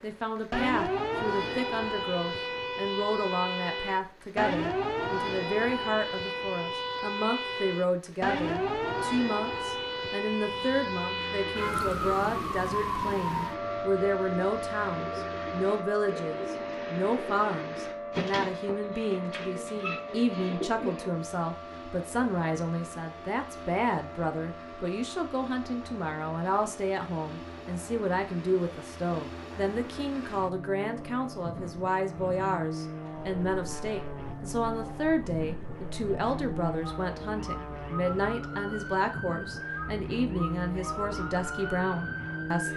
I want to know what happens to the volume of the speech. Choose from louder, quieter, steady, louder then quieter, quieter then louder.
steady.